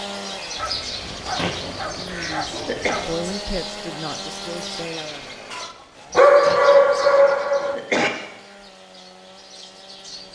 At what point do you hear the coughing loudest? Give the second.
8 s.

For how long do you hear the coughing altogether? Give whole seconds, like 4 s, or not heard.
4 s.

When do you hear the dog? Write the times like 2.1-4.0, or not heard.
0.6-3.2, 6.1-7.8.